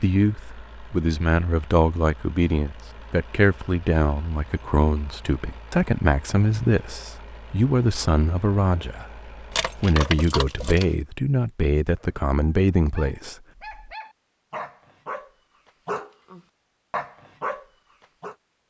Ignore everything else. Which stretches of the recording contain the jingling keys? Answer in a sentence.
You can hear the jingling keys from 9.5 to 10.9 s.